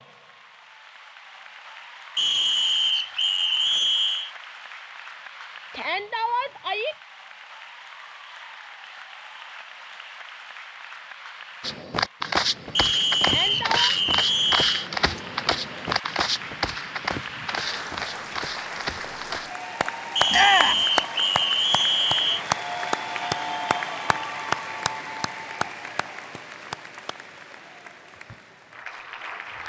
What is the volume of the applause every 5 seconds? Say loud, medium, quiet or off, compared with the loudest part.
quiet, quiet, quiet, medium, loud, medium.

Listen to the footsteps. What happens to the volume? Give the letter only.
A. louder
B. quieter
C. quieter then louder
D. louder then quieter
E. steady
B.